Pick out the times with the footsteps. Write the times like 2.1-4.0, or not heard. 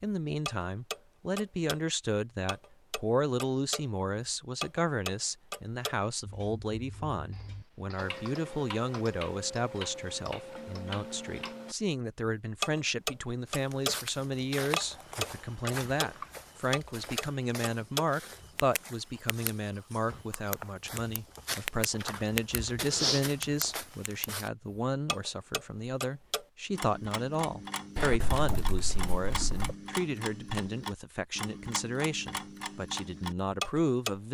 13.5-24.5.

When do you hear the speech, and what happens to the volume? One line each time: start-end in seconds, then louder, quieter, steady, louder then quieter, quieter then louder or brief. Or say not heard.
0.0-34.3 steady.